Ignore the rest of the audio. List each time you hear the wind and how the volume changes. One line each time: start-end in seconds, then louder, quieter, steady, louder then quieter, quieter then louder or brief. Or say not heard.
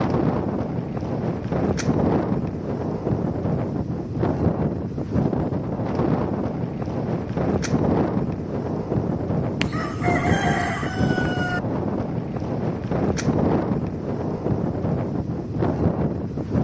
0.0-16.5 steady.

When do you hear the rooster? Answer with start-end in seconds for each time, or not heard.
9.6-11.6.